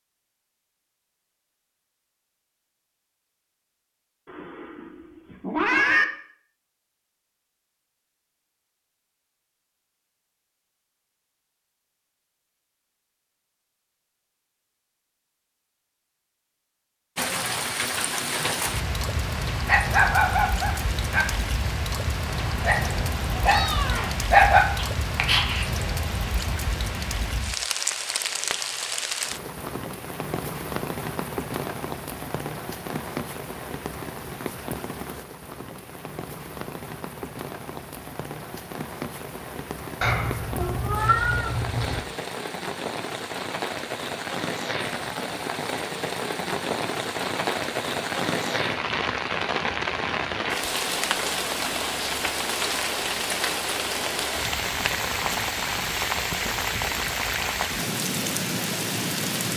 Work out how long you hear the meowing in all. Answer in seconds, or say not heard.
6 s.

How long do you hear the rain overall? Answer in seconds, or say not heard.
42 s.